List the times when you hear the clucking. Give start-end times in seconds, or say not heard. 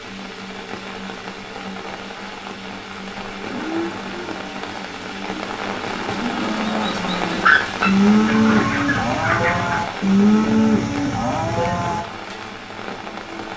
7.4-9.8.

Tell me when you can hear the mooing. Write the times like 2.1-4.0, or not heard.
3.5-12.1.